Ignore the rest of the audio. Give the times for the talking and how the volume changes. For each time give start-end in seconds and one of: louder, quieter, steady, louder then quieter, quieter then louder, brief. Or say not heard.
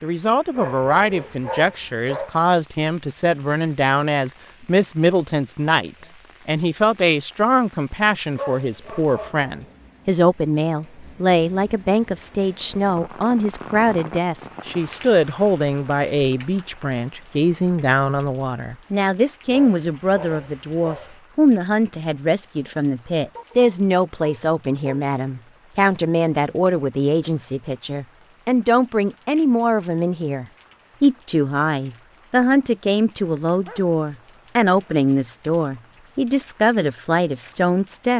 0.0-38.1 steady.